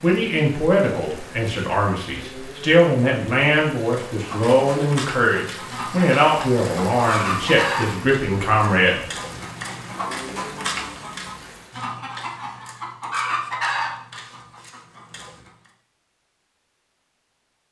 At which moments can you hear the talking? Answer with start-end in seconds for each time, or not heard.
0.0-9.1.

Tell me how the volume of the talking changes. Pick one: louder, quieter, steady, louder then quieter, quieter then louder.
steady.